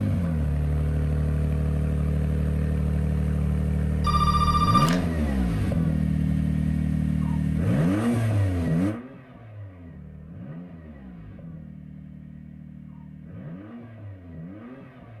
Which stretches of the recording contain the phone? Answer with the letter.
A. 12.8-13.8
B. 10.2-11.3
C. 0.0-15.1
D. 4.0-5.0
D.